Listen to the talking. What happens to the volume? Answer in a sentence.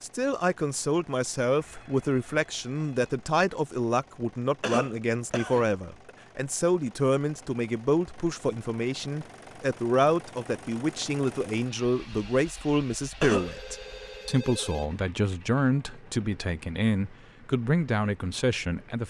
The volume of the talking stays about the same.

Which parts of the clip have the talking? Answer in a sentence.
You can hear the talking from 0.0 to 19.0 s.